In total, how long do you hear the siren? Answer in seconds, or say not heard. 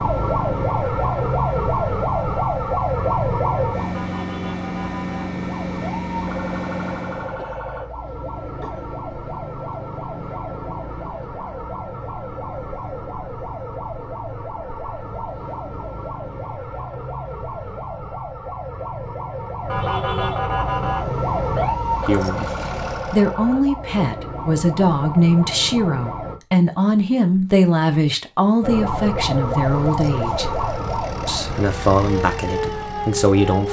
31 s.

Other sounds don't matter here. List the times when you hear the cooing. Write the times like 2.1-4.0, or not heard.
not heard.